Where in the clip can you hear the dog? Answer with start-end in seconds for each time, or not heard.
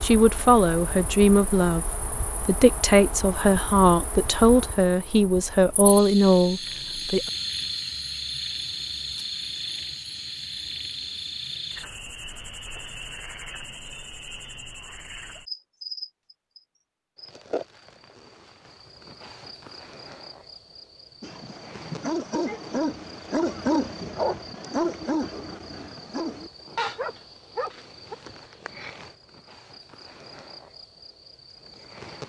21.2-28.1.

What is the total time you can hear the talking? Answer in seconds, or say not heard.
7 s.